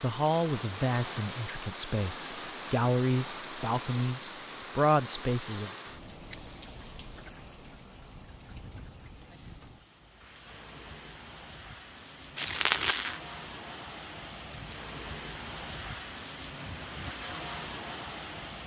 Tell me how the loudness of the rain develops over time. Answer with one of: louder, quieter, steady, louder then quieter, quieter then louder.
quieter then louder.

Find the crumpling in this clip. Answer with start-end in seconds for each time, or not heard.
12.3-13.2.